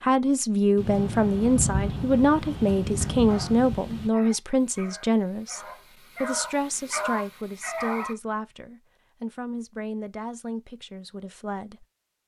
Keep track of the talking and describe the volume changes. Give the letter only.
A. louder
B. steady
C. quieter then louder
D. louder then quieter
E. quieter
E.